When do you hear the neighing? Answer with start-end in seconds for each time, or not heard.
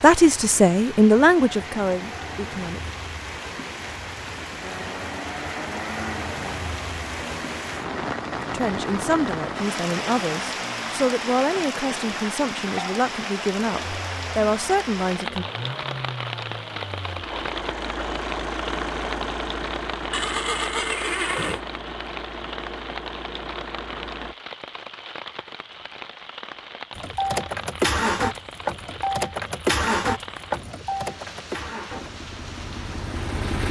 20.1-21.6.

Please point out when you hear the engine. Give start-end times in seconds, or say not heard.
4.6-24.4, 26.9-33.6.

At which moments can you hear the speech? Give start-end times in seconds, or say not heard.
0.0-2.9, 8.5-15.4.